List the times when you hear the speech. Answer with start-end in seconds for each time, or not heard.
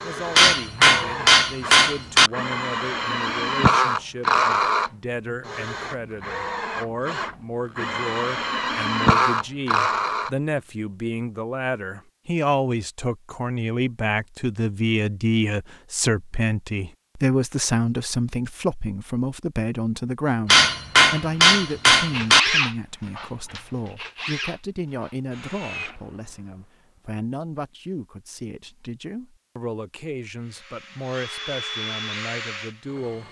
0.0-33.2.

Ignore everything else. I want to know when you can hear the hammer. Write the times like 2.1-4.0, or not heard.
0.3-2.3, 20.4-22.4.